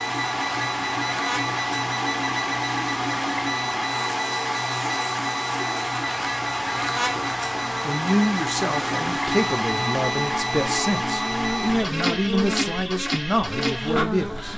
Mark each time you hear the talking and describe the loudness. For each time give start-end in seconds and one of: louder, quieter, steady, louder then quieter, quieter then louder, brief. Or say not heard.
7.8-14.5 steady.